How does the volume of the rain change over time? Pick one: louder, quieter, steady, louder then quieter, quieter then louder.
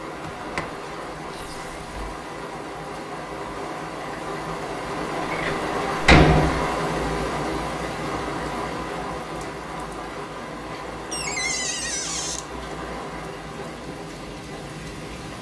louder then quieter.